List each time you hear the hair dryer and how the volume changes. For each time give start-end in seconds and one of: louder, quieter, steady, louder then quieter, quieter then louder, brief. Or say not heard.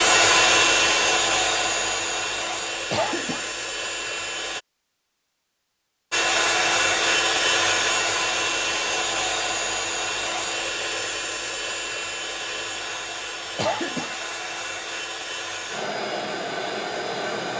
0.0-4.6 quieter
6.1-17.5 quieter.